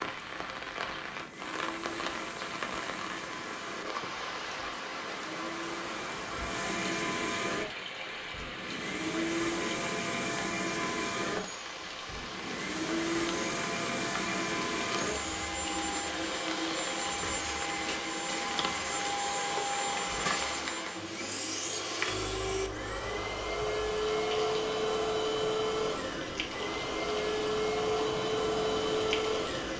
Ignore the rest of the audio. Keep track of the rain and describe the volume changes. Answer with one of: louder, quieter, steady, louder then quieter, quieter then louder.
steady.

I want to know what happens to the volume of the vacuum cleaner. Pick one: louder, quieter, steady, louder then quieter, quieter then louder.
louder.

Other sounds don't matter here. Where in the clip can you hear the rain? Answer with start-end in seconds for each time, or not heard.
0.0-29.7.